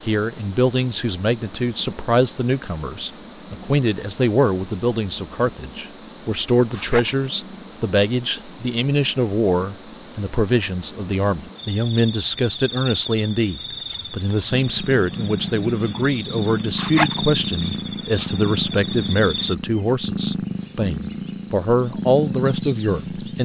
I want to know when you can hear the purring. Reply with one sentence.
You can hear the purring from 14.5 to 23.4 s.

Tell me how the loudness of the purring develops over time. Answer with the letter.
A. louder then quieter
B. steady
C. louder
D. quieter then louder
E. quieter
B.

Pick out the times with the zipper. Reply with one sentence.
You can hear the zipper from 6.7 to 7.2 s and from 16.8 to 17.2 s.